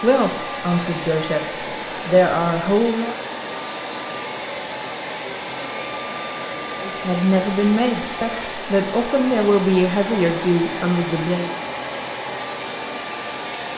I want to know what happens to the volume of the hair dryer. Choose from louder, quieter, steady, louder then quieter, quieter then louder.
steady.